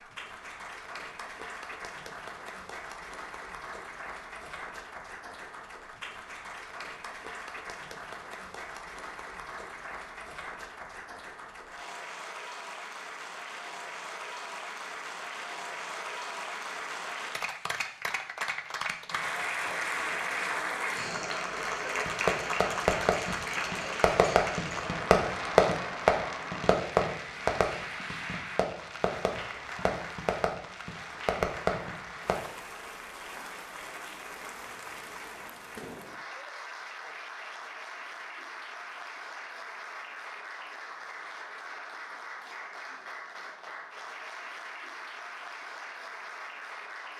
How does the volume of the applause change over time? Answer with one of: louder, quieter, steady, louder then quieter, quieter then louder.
louder then quieter.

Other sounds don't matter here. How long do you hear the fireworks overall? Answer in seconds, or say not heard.
10 s.